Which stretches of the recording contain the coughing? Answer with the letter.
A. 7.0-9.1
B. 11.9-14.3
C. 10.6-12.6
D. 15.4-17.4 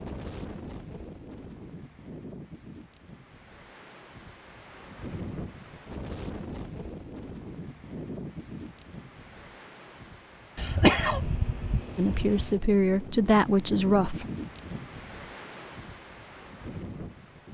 C.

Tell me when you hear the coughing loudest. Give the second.
11 s.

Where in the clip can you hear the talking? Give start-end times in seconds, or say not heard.
11.9-14.3.